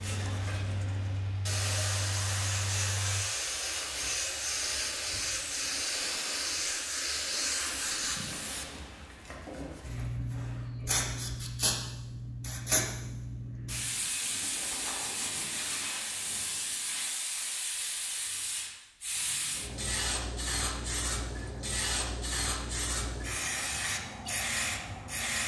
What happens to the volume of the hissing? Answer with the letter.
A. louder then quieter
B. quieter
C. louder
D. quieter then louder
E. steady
E.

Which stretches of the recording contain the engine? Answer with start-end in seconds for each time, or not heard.
0.0-3.2.